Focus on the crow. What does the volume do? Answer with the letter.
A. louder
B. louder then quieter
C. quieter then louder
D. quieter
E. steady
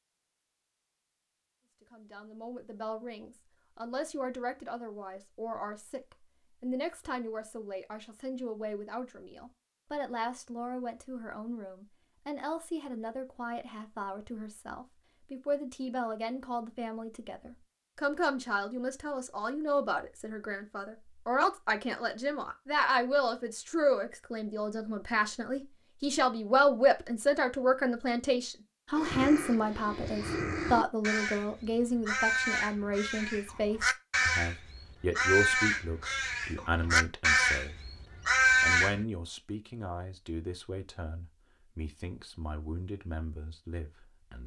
A.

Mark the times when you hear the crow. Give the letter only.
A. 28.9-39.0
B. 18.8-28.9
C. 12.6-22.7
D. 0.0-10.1
A.